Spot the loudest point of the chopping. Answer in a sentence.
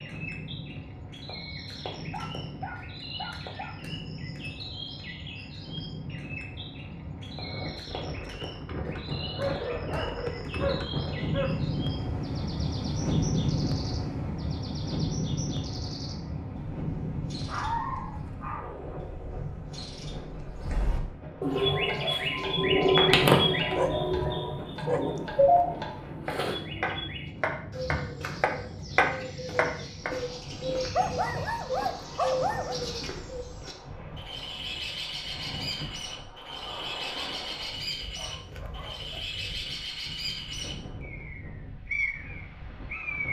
The loudest moment of the chopping is at 29 seconds.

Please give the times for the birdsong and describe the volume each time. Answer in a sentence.
You can hear the birdsong from 0.0 to 43.2 s, getting louder then quieter.